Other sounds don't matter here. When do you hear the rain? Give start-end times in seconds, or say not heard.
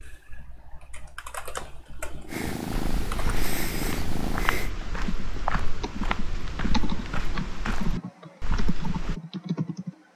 not heard.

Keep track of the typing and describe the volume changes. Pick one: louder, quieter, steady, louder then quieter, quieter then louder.
louder.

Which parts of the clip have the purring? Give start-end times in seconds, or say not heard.
2.2-4.7.